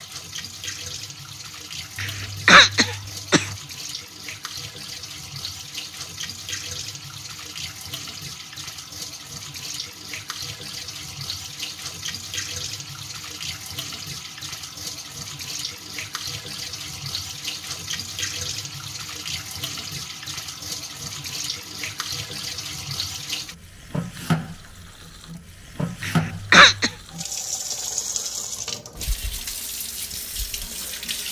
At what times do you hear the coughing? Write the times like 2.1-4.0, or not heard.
1.9-3.5, 26.0-26.9.